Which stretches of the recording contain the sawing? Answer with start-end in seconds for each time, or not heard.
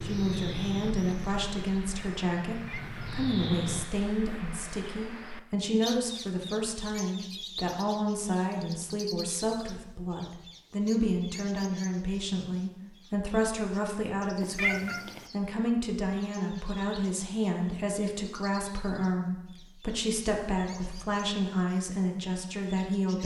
not heard.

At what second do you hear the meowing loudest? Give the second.
15 s.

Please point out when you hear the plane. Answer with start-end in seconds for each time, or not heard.
0.0-3.9.